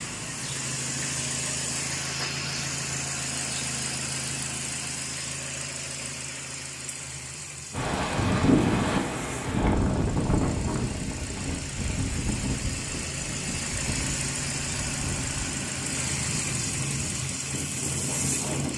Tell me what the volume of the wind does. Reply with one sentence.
The loudness of the wind goes down.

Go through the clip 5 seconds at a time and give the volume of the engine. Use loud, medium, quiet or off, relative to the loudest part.
loud, medium, loud, loud.